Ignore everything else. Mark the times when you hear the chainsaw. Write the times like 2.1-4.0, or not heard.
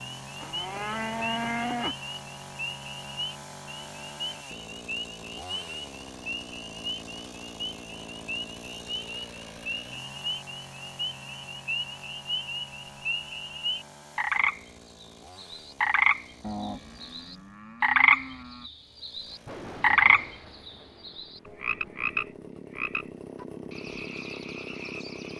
0.0-17.6, 18.7-25.3.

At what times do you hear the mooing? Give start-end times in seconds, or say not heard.
0.4-1.9, 16.4-18.7.